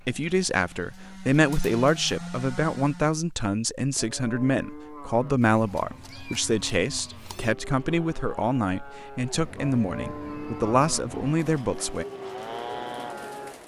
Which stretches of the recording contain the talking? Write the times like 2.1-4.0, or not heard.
0.1-12.1.